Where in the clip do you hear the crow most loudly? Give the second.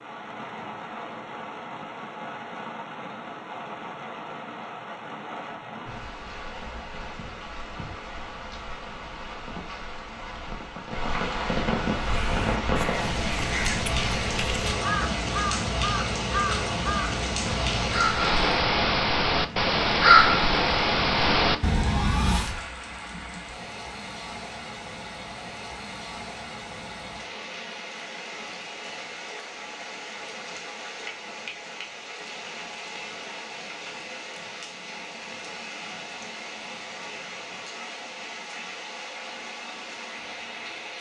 20 s.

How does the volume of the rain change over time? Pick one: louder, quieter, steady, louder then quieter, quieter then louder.
louder then quieter.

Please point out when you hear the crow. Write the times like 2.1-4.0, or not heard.
12.0-22.6.